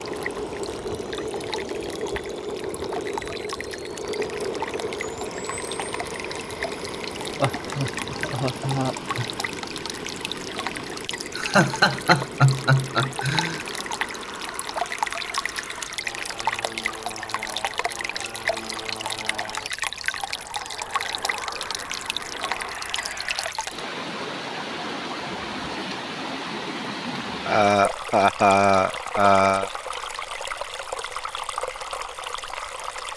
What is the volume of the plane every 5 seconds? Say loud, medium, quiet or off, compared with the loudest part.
loud, loud, medium, medium, medium, off, off.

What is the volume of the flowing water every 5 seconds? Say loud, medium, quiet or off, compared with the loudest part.
medium, medium, loud, loud, loud, loud, loud.